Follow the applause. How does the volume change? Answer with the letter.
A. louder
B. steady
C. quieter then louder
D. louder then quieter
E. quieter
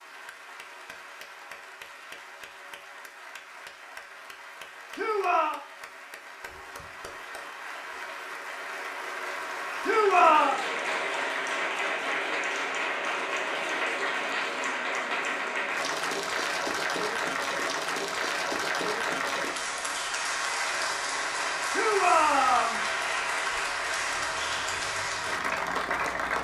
A.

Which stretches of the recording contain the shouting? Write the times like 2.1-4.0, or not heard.
5.0-5.6, 9.8-10.6, 21.7-22.8.